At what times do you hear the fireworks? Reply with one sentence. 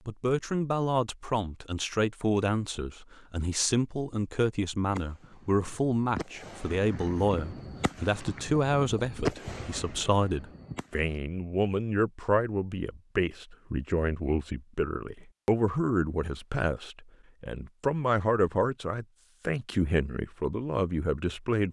The fireworks can be heard from 4.8 to 11.2 s.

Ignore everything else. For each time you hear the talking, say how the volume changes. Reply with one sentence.
You can hear the talking from 0.1 to 21.6 s, at a steady volume.